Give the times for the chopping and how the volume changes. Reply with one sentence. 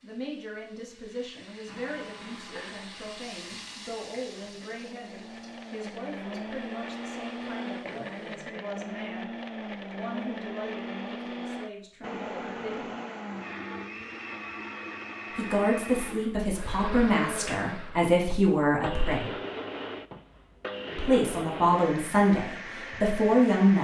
You can't hear the chopping here.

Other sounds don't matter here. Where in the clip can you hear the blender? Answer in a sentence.
You can hear the blender from 1.6 to 23.7 s.